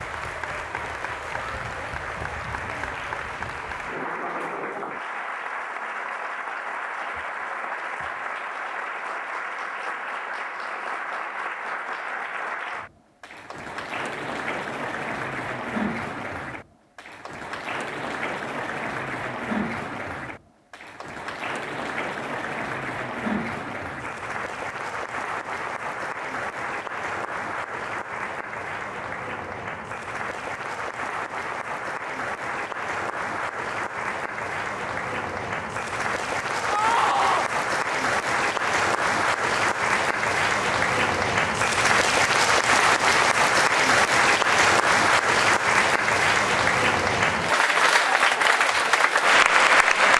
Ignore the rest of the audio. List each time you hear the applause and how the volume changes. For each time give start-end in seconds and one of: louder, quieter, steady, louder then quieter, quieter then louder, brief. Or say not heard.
0.0-50.1 louder.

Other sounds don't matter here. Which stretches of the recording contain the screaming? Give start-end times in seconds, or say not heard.
36.6-37.5.